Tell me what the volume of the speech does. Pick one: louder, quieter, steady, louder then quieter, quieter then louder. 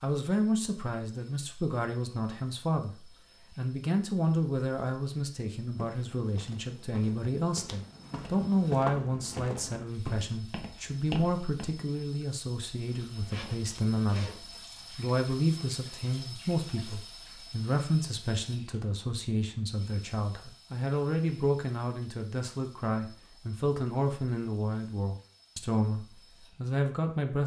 steady.